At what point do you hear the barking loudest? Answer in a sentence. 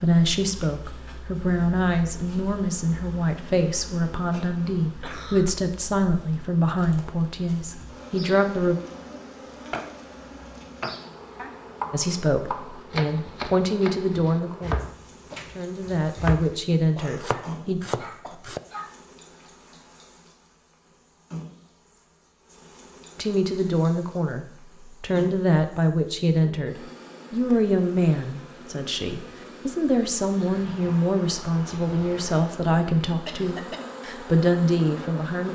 The loudest moment of the barking is at 19 seconds.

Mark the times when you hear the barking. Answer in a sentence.
The barking can be heard from 17.2 to 19.1 s.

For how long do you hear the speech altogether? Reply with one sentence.
You can hear the speech for 27 seconds altogether.